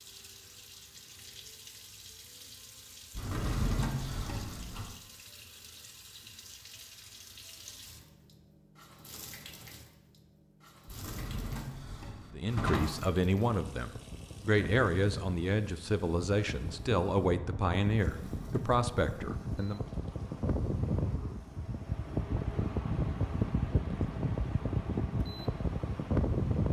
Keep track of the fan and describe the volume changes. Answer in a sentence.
The volume of the fan goes up.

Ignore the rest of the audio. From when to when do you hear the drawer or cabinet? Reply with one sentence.
You can hear the drawer or cabinet from 3.1 to 4.8 s, from 10.8 to 13.1 s and from 18.1 to 18.8 s.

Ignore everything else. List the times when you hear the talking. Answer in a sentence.
You can hear the talking from 12.3 to 19.8 s.